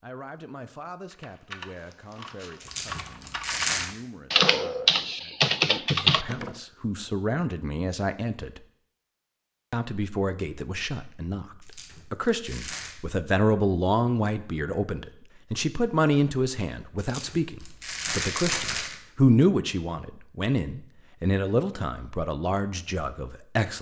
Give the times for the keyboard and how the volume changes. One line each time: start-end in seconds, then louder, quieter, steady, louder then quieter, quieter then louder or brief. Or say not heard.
1.1-6.5 louder.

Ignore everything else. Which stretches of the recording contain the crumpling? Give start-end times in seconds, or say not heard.
2.6-3.9, 11.6-13.0, 16.9-18.9.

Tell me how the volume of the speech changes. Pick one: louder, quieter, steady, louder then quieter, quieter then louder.
louder.